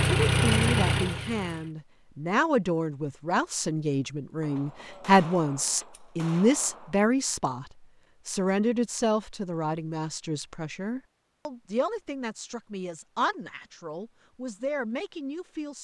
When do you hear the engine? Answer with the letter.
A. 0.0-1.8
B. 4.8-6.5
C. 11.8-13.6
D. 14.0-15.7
A.